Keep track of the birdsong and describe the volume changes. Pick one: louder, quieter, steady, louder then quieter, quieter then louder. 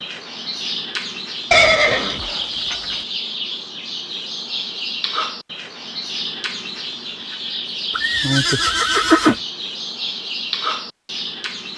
steady.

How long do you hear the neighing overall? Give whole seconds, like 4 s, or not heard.
3 s.